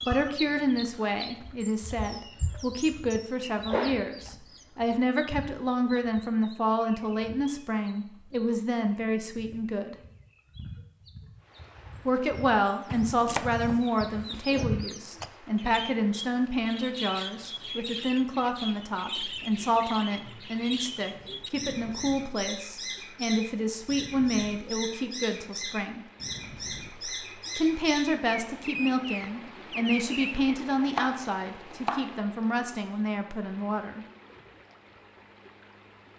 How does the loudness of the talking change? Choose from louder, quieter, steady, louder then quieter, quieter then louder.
steady.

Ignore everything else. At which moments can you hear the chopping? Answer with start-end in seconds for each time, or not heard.
13.1-14.7, 30.4-32.1.